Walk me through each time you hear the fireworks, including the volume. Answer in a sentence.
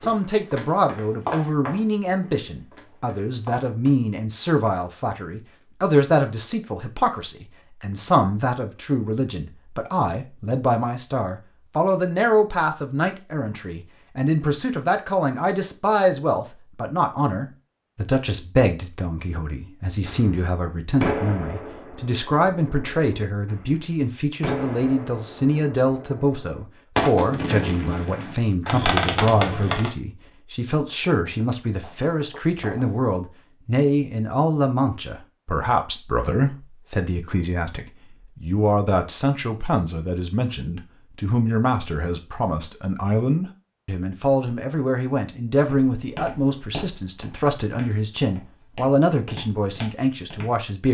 The fireworks can be heard from 20.1 to 29.9 s, getting quieter then louder.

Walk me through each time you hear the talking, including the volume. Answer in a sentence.
You can hear the talking from 0.0 to 50.9 s, at a steady volume.